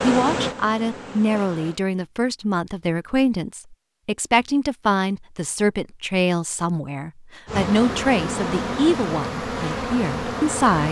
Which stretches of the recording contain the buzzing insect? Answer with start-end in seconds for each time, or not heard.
0.0-1.8, 7.5-10.8.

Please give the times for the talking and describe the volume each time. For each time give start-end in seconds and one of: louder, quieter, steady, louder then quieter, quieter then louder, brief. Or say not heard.
0.0-10.8 steady.